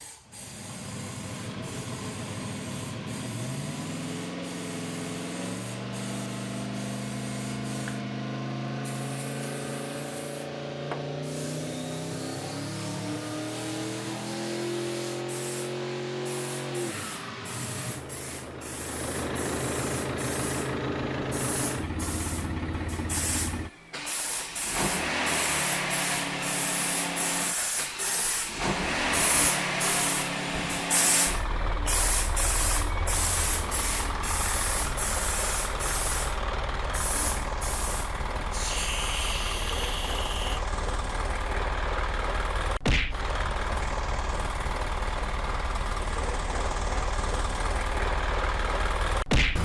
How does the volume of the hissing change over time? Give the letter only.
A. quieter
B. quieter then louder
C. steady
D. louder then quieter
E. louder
E.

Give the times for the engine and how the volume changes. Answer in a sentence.
The engine can be heard from 0.0 to 49.5 s, at a steady volume.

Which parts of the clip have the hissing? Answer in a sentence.
You can hear the hissing from 0.0 to 40.6 s.